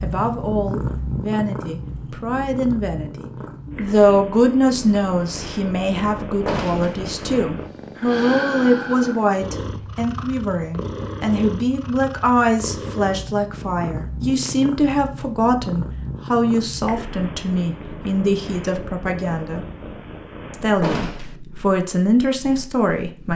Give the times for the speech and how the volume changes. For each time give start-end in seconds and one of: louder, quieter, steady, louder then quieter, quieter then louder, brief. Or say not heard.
0.0-19.6 steady
20.5-23.3 brief.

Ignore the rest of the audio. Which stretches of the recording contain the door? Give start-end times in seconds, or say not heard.
6.5-7.0, 20.8-21.4.